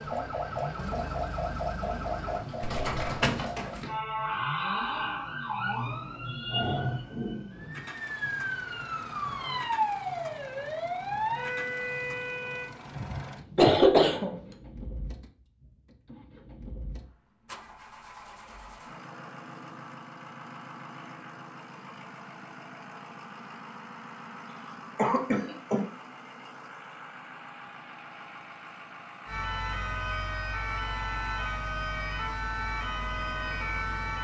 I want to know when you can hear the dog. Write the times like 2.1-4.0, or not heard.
not heard.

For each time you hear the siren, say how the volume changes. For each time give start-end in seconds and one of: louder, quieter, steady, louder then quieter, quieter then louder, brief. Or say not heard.
0.0-12.7 steady
29.2-34.2 steady.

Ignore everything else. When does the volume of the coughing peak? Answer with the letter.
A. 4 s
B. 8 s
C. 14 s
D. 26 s
C.